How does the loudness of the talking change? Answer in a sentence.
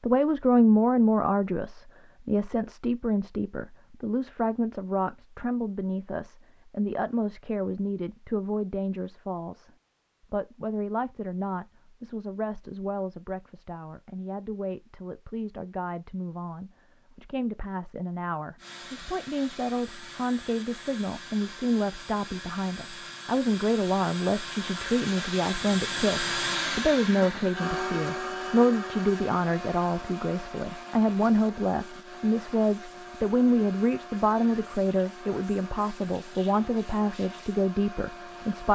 The loudness of the talking goes down, then up.